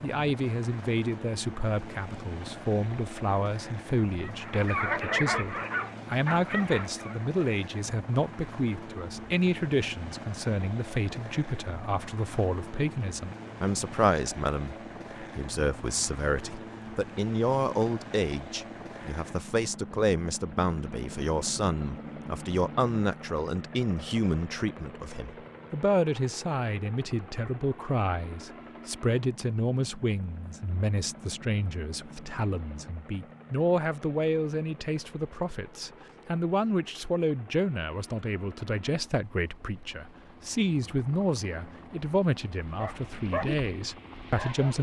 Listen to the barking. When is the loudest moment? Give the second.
5 s.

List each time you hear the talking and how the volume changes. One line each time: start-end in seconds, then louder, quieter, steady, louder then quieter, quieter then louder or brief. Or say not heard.
0.0-44.7 steady.